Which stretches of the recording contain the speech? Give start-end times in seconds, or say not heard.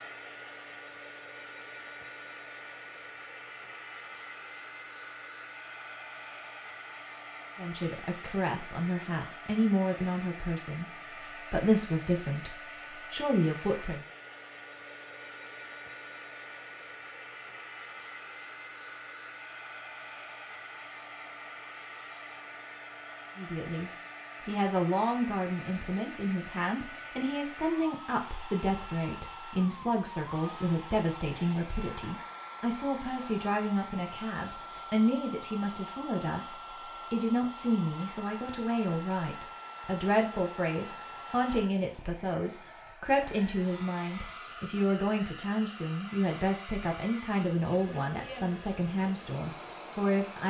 7.5-14.0, 23.4-50.4.